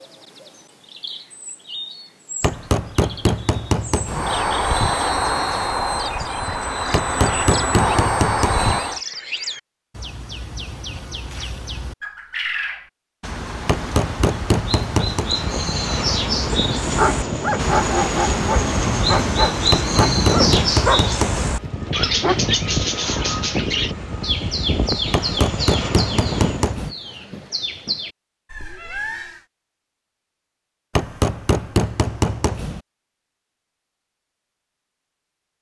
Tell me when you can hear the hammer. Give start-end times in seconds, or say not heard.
2.4-4.3, 6.9-8.8, 13.7-15.3, 19.7-21.6, 25.1-26.9, 30.9-32.8.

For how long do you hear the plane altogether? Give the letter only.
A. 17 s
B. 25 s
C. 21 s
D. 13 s
A.